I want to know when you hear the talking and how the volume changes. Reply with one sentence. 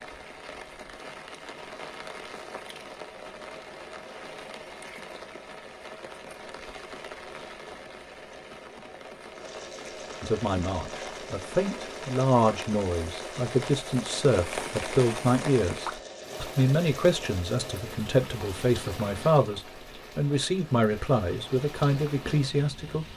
You can hear the talking from 10.2 to 23.1 s, at a steady volume.